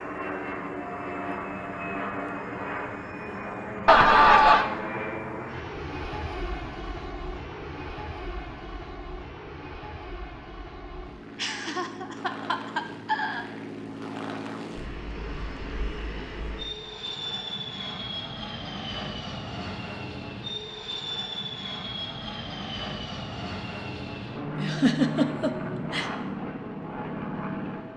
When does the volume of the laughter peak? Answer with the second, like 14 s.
4 s.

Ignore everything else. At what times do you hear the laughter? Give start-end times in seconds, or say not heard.
3.9-4.7, 11.3-13.4, 24.6-26.1.